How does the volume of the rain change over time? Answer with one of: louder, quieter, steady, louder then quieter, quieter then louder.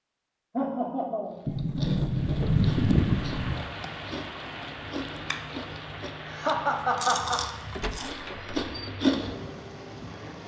quieter.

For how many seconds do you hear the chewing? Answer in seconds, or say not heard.
8 s.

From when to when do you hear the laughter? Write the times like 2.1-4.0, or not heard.
0.5-1.9, 6.2-7.4.